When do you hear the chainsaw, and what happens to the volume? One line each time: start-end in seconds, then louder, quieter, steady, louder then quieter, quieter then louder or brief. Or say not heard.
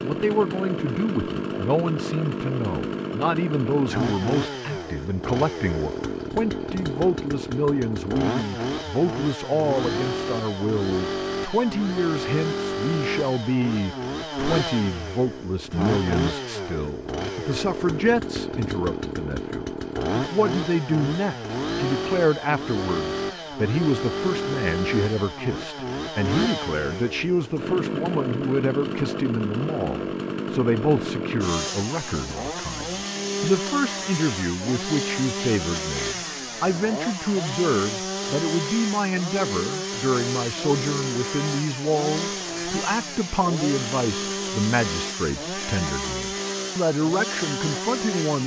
0.0-48.4 steady.